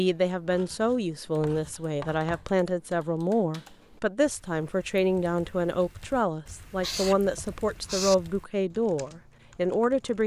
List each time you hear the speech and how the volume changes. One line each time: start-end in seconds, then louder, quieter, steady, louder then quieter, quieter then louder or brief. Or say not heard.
0.0-10.2 steady.